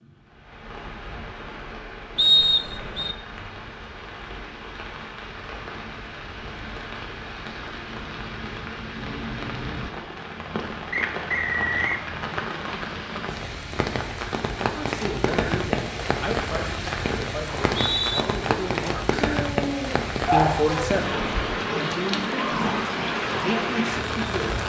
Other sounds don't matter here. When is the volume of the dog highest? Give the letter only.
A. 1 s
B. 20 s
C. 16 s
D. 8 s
B.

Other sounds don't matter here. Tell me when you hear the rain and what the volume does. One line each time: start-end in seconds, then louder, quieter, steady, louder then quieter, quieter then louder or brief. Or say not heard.
0.0-24.6 louder.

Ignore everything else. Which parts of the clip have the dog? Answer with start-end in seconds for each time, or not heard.
19.2-20.9.